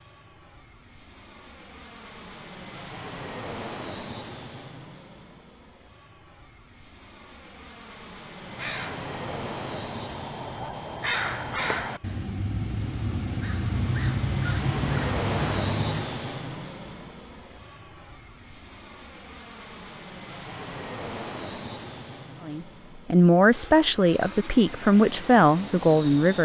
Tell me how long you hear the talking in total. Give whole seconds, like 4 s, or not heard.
4 s.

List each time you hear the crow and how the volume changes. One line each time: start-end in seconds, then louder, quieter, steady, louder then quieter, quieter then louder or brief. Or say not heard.
8.3-16.1 louder.